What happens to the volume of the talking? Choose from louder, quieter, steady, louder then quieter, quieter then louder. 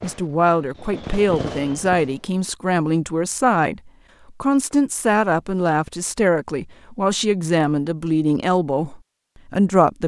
steady.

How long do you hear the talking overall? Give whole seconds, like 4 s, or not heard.
10 s.